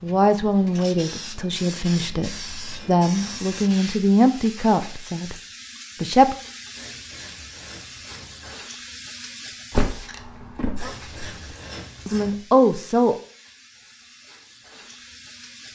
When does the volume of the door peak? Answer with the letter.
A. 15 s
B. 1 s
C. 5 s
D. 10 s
D.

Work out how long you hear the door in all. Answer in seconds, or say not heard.
2 s.